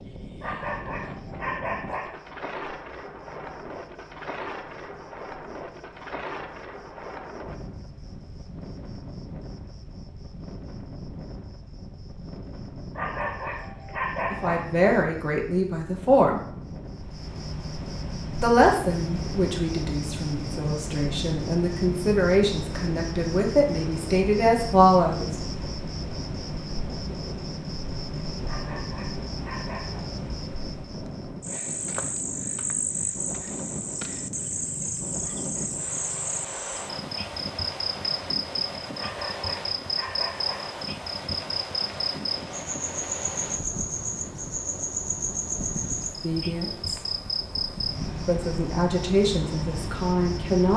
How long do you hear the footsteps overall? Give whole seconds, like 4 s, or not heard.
not heard.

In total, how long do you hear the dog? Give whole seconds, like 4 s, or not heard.
7 s.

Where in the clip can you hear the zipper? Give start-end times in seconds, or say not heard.
not heard.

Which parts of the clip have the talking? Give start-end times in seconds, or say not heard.
14.3-16.4, 18.4-25.4, 46.2-47.0, 48.2-50.7.